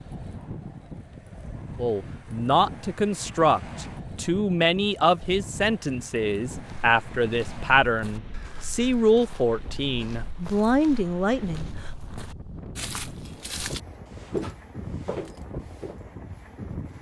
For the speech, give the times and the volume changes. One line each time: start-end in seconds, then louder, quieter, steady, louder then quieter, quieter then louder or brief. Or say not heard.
1.8-11.9 steady.